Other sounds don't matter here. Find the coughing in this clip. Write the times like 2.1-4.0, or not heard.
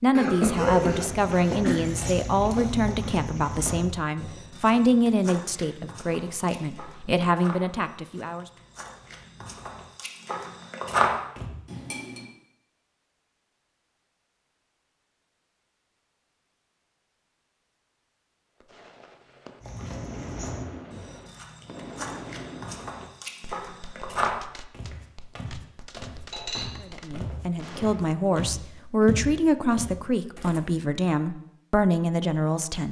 0.1-1.8.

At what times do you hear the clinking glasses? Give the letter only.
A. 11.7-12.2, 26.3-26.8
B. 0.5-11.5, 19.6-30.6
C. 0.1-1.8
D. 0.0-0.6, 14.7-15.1
A.